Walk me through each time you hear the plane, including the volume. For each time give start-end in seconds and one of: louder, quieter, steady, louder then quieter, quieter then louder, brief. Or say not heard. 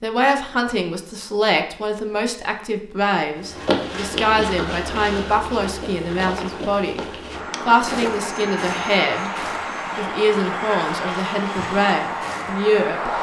7.3-13.1 steady.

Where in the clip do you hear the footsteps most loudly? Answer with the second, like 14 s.
4 s.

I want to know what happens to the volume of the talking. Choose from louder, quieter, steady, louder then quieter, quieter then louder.
steady.